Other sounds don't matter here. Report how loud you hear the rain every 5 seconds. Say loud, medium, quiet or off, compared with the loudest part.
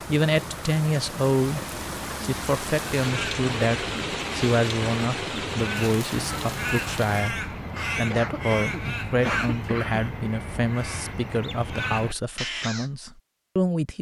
loud, loud, off.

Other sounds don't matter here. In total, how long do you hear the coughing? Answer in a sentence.
The coughing can be heard for 2 seconds in total.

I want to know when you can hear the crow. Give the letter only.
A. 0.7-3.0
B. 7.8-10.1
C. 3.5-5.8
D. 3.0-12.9
D.